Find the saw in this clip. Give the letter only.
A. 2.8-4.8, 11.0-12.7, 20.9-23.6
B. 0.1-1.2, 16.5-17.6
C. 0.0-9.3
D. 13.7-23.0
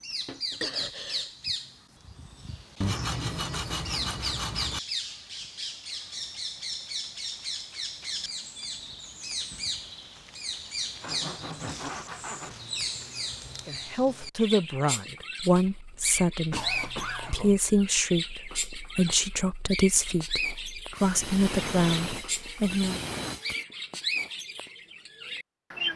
A.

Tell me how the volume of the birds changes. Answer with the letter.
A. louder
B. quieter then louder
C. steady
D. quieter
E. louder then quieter
C.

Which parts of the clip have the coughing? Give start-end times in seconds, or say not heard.
0.1-1.2, 16.5-17.6.